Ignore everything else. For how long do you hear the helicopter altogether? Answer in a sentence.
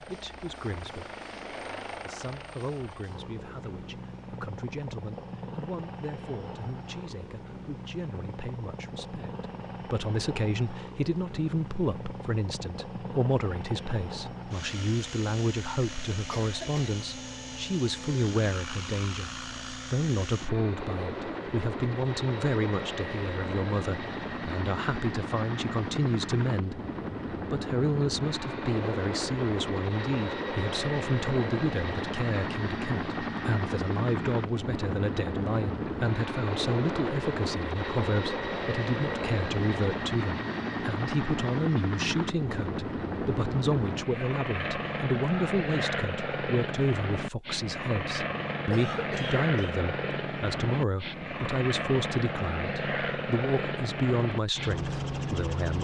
The helicopter can be heard for 56 seconds in total.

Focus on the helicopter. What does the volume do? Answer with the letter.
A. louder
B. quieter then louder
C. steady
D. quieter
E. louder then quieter
A.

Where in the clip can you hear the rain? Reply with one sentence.
You can't hear the rain here.